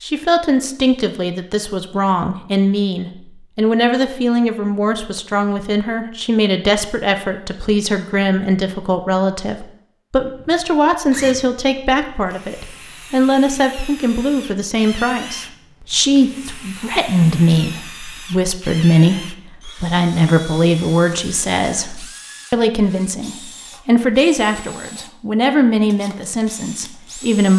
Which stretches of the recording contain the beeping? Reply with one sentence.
You can't hear the beeping here.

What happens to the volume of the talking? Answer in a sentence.
The loudness of the talking stays about the same.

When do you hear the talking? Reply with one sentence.
The talking can be heard from 0.0 to 27.5 s.